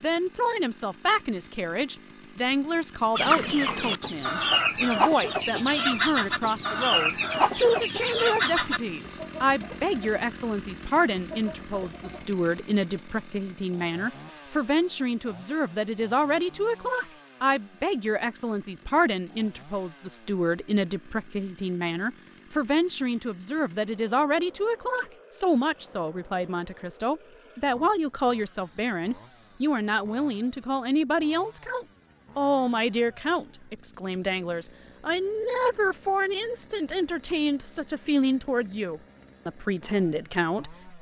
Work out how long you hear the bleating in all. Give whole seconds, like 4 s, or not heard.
not heard.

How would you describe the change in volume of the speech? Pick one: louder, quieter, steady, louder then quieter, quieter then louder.
steady.